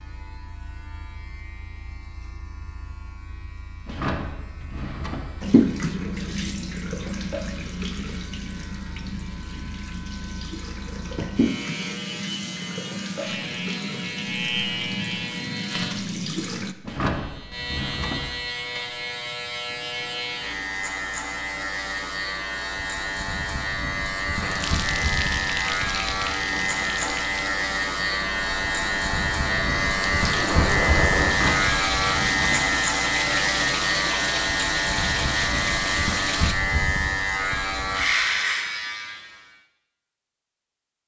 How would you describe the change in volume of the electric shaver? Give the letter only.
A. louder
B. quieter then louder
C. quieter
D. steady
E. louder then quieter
A.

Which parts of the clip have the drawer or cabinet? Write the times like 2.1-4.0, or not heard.
3.9-5.4, 16.8-18.4, 31.2-32.8.